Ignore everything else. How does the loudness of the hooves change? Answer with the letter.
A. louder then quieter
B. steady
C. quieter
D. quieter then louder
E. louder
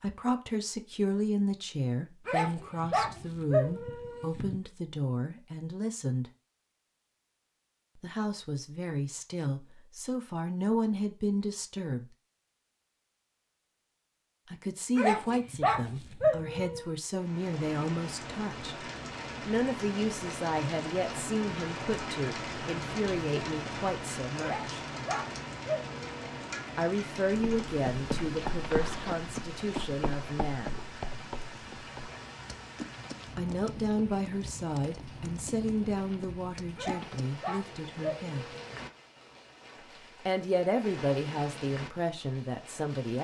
C.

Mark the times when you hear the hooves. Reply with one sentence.
You can hear the hooves from 27.2 to 37.2 s.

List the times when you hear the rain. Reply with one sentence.
The rain can be heard from 17.1 to 43.1 s.